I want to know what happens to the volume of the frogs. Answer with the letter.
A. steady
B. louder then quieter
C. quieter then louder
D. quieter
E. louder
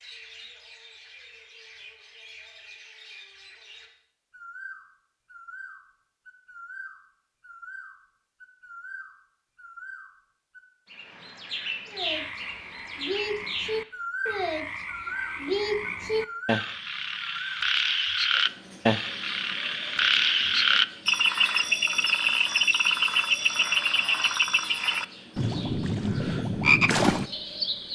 E.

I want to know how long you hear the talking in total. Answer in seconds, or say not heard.
not heard.